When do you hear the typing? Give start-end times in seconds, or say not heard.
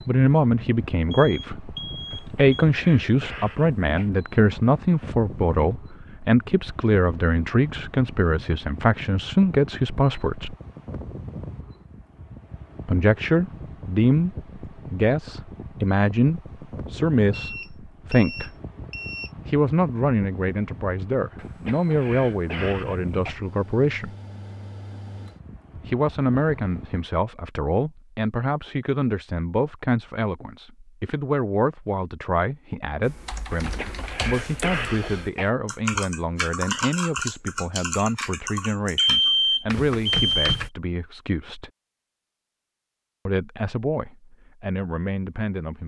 33.0-40.7.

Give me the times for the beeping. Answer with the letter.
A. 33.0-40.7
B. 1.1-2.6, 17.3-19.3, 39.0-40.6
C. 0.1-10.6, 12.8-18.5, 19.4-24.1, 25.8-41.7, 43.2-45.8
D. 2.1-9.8
B.